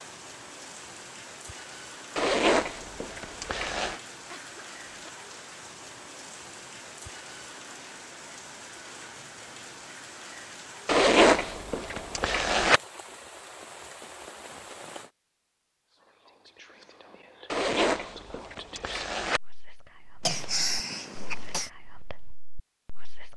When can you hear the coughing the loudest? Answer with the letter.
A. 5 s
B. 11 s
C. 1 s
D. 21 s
D.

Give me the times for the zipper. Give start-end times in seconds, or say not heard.
2.1-4.0, 10.8-12.8, 17.5-19.4.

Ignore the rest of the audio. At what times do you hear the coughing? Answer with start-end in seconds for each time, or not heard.
4.3-5.1, 20.2-21.7.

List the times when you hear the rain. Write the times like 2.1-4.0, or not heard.
0.0-15.1.